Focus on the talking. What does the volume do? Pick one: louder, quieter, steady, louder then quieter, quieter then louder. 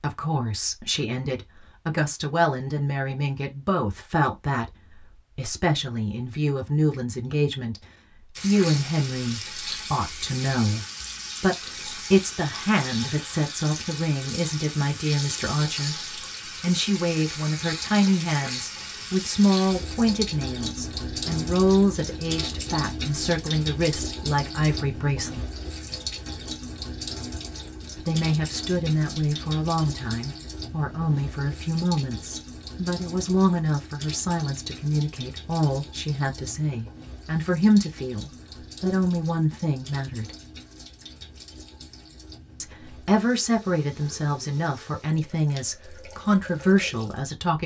steady.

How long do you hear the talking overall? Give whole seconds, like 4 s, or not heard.
42 s.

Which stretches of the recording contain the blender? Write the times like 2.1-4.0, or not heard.
not heard.